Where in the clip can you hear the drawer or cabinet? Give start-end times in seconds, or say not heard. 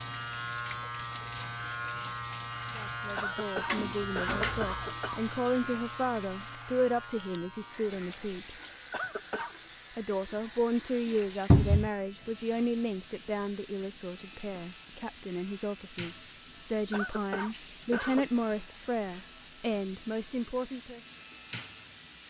3.6-4.8, 11.5-11.9.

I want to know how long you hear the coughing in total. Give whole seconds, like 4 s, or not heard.
4 s.